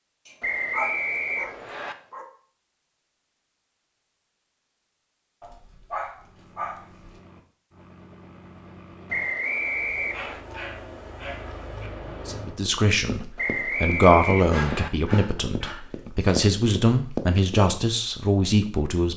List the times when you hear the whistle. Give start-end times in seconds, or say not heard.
0.4-1.9, 9.1-10.4, 13.3-14.9.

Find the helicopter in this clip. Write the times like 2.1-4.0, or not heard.
6.2-12.6.